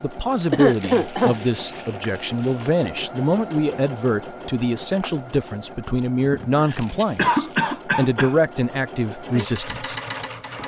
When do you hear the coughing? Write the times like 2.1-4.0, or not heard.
0.5-1.4, 6.2-8.3.